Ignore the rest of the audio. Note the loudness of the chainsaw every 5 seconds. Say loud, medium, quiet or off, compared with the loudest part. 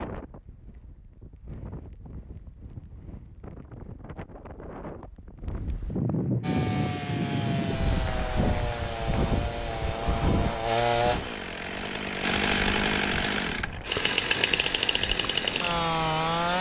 off, medium, loud, loud.